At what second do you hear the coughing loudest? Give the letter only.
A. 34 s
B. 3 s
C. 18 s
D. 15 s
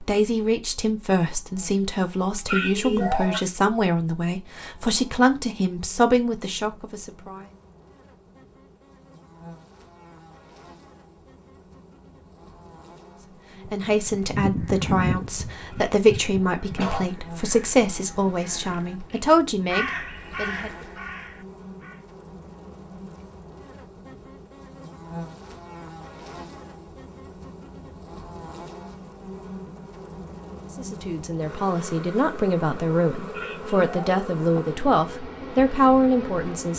B.